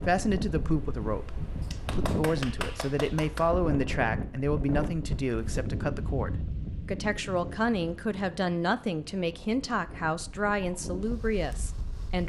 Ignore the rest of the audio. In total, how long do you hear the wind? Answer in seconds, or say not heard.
12 s.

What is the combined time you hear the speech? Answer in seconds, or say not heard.
12 s.